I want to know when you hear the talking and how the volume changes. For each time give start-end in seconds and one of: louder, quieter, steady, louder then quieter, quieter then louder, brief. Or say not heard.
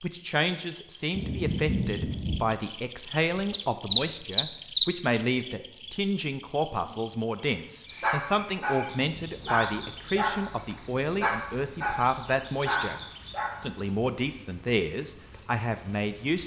0.0-13.0 steady
13.6-16.4 brief.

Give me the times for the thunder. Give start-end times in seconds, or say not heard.
1.1-2.5.